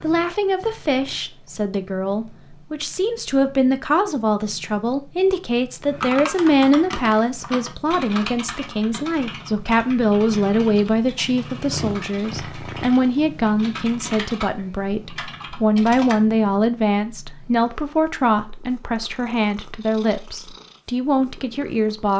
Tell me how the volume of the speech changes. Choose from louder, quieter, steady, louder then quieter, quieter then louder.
steady.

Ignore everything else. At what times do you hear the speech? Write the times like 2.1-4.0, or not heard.
0.0-22.1.